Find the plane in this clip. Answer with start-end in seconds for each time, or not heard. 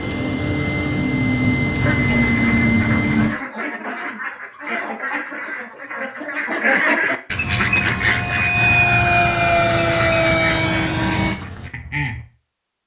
0.0-3.4, 7.4-11.4.